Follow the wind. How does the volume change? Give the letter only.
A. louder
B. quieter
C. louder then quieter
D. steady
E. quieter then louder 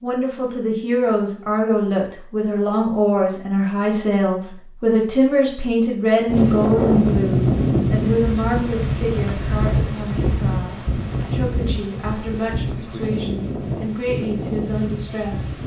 B.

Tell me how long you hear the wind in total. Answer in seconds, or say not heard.
9 s.